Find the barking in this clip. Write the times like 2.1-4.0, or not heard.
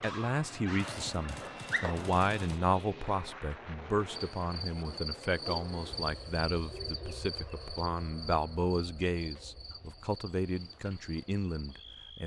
0.0-1.9.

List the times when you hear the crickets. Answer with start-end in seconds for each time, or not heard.
4.1-12.2.